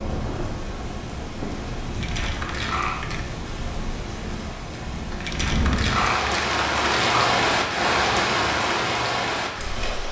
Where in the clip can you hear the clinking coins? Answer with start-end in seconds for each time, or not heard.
2.0-3.3, 5.2-7.2.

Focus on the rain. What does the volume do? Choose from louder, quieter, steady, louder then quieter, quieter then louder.
louder.